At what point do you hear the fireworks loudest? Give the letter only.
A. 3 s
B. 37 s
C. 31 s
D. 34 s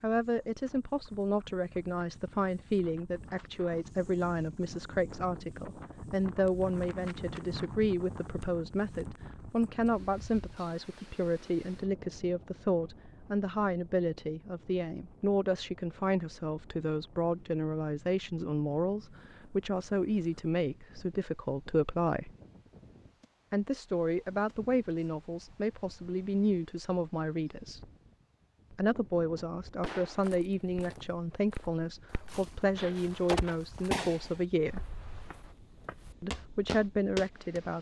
D.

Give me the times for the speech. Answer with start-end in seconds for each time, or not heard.
0.0-22.3, 23.5-27.9, 28.7-34.9, 36.2-37.7.